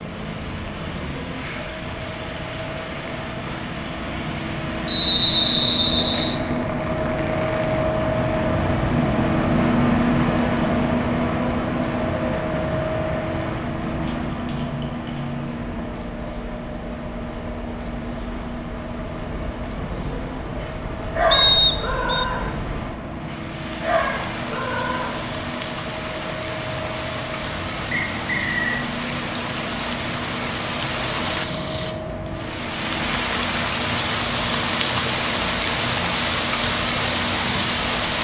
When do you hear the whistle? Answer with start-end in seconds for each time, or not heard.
4.8-6.3, 21.3-22.2, 27.9-28.8.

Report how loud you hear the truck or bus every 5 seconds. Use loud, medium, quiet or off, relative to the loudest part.
medium, loud, loud, medium, medium, medium, medium, medium.